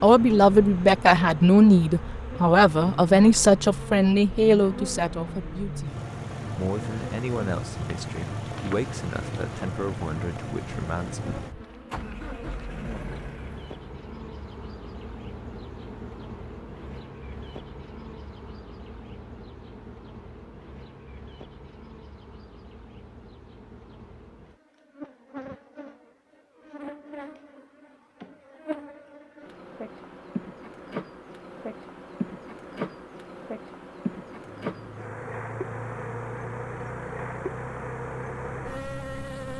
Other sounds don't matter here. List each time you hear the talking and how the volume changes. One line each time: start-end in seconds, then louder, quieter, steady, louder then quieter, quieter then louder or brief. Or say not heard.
0.0-11.2 quieter.